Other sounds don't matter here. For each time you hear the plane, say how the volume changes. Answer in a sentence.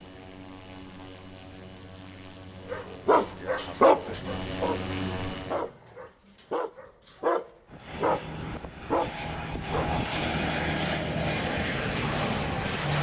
You can hear the plane from 0.0 to 5.8 s, getting louder; and from 7.7 to 12.9 s, getting louder.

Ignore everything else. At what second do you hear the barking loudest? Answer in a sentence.
The loudest moment of the barking is at 4 seconds.